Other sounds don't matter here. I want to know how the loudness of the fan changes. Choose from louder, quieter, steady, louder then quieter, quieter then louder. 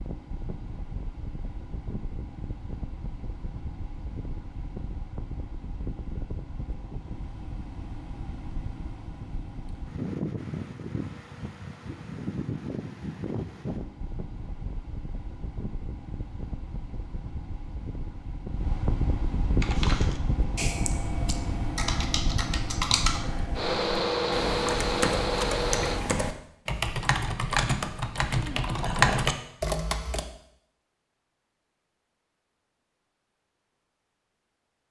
louder.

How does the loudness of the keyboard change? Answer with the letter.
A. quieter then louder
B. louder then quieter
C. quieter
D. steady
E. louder
E.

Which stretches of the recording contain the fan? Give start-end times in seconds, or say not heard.
0.0-26.1.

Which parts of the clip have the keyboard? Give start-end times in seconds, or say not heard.
19.6-30.2.